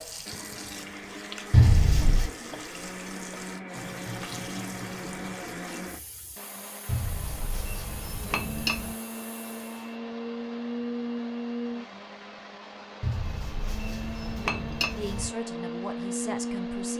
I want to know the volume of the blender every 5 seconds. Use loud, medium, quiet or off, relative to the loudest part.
medium, medium, loud, loud.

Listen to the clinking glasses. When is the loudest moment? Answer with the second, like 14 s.
2 s.